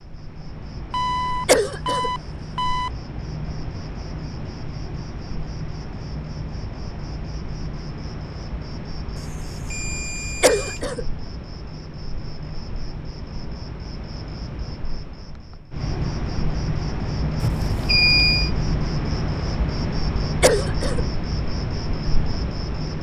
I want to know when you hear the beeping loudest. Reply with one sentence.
The loudest moment of the beeping is at 18 seconds.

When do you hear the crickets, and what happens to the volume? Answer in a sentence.
You can hear the crickets from 0.0 to 22.9 s, getting louder.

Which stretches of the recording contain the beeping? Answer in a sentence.
You can hear the beeping from 0.9 to 2.9 s, from 9.2 to 10.8 s and from 17.4 to 18.5 s.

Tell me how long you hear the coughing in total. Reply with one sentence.
You can hear the coughing for 2 seconds altogether.